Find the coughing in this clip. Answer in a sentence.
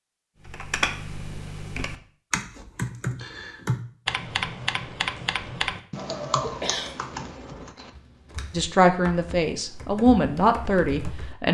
The coughing can be heard from 6.4 to 7.7 s.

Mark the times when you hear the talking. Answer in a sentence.
The talking can be heard from 8.5 to 11.4 s.